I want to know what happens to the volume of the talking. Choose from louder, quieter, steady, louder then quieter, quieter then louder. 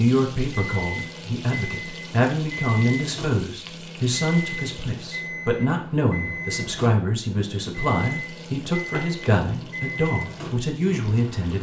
steady.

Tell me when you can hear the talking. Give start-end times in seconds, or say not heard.
0.0-11.5.